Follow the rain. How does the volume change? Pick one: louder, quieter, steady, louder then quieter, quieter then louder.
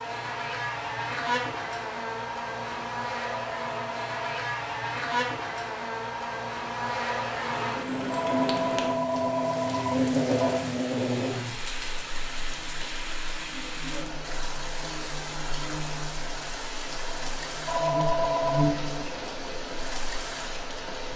steady.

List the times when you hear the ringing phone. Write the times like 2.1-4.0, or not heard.
3.4-4.2, 8.1-10.6, 17.6-18.7.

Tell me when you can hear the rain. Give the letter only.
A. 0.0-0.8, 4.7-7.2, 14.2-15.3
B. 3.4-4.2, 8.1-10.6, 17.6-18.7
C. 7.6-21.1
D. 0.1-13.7
C.